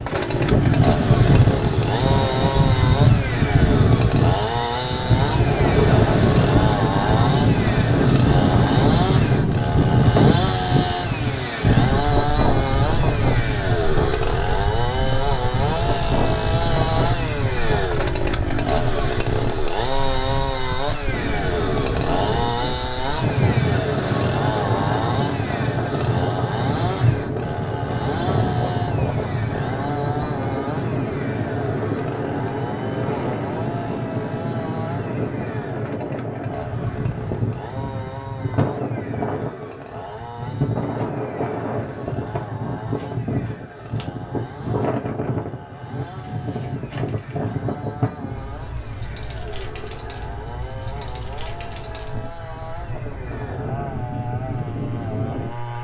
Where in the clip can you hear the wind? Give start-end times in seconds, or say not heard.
0.0-55.7.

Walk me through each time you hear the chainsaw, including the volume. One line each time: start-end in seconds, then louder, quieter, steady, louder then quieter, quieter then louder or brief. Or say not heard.
0.0-55.7 quieter.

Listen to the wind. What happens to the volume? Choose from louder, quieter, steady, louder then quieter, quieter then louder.
quieter.